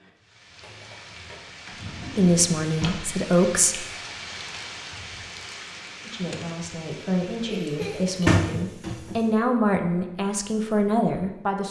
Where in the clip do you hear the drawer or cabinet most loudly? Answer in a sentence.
The loudest moment of the drawer or cabinet is at 8 seconds.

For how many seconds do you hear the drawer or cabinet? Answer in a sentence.
The drawer or cabinet can be heard for 3 seconds in total.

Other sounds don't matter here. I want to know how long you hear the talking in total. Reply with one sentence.
You can hear the talking for 7 seconds altogether.